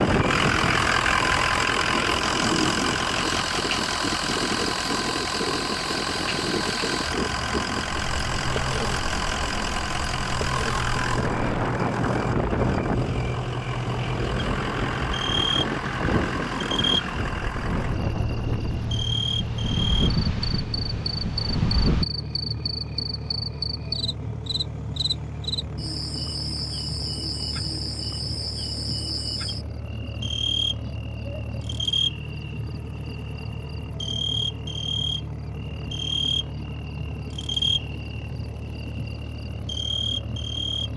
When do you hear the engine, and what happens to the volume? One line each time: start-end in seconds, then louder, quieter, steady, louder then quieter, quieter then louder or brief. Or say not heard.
0.0-40.9 quieter.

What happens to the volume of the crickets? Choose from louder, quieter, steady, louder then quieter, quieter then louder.
steady.